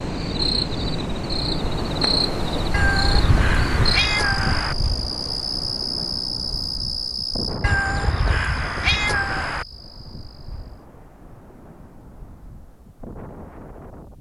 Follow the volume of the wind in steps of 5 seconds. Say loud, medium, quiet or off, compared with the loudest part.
loud, medium, quiet.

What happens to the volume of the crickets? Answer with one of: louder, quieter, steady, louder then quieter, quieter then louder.
quieter.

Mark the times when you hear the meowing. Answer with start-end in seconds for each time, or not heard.
2.7-4.8, 7.6-9.7.